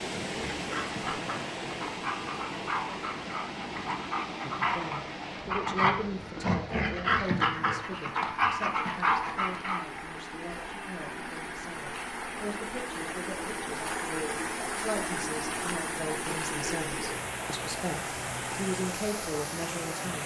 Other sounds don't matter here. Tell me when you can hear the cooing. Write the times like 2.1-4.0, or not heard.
not heard.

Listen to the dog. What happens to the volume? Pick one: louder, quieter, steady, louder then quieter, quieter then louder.
louder.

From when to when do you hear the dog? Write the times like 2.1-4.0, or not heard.
0.1-10.0.